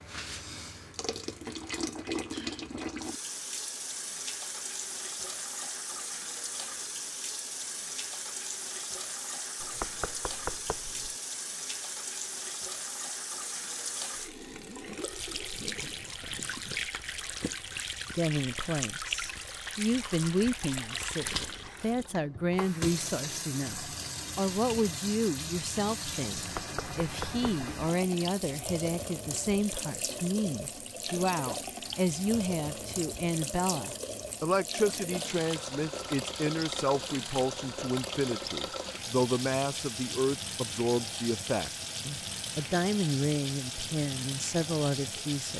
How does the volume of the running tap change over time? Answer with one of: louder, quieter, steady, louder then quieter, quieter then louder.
steady.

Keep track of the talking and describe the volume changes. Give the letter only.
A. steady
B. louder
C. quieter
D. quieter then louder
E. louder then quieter
A.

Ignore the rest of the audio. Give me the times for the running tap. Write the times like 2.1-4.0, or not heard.
0.0-45.5.